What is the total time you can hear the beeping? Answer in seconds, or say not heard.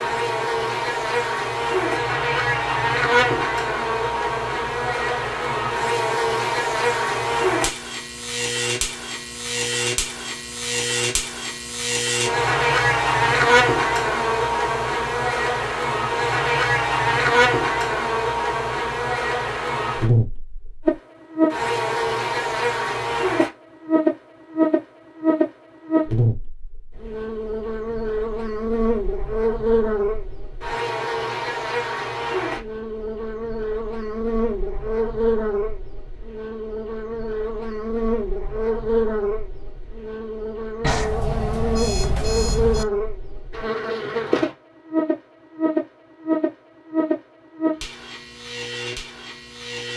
2 s.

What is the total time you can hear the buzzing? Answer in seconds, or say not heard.
50 s.